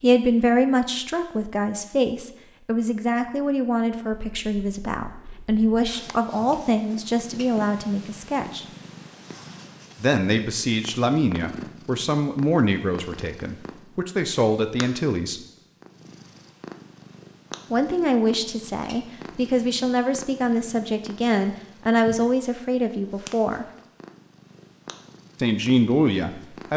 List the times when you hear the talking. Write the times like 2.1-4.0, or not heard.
0.0-8.7, 10.0-15.4, 17.7-23.6, 25.4-26.7.